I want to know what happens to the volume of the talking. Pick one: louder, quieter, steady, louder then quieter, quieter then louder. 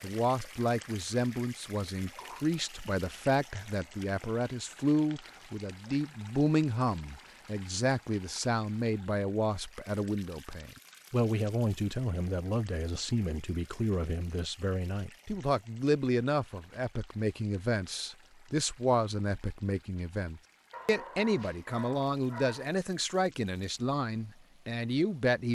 steady.